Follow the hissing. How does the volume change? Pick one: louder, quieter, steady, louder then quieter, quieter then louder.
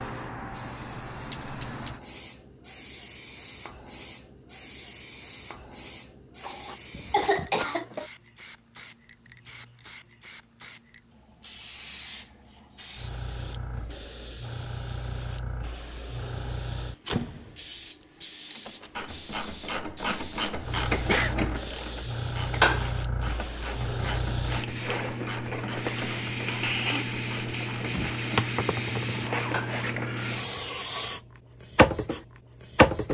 louder.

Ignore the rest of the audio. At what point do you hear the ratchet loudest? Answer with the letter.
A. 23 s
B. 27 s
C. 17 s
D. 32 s
A.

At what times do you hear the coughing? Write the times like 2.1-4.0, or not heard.
6.4-8.1, 21.1-21.5.